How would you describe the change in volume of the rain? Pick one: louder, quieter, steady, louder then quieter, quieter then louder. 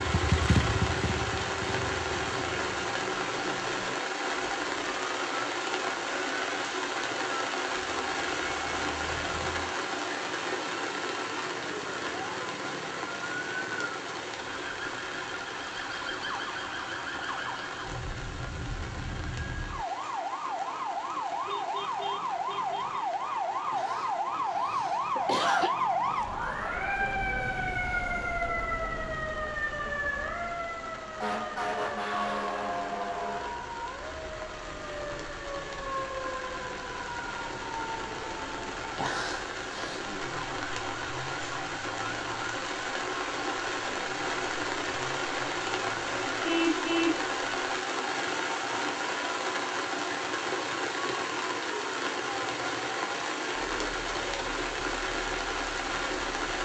quieter then louder.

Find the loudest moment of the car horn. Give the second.
47 s.